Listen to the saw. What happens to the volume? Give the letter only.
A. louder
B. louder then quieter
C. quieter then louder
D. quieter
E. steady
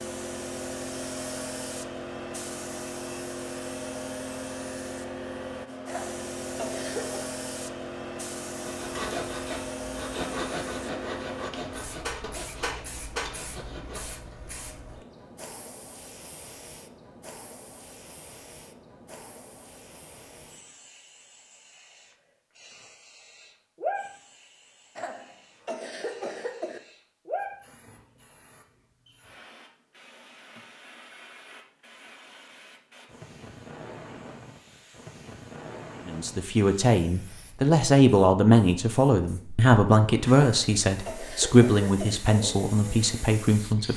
D.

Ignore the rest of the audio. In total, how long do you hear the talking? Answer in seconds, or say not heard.
8 s.